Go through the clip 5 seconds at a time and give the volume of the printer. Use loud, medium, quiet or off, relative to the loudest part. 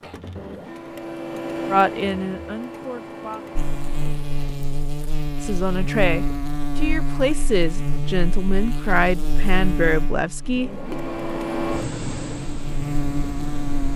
loud, off, loud.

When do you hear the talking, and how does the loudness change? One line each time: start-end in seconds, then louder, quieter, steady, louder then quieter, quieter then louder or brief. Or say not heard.
1.7-3.4 brief
5.4-10.9 steady.